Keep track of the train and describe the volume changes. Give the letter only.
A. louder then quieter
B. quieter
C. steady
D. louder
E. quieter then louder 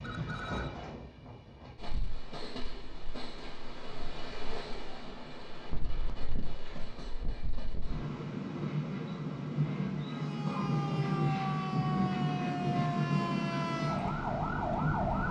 D.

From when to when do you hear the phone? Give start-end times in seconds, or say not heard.
0.0-0.8.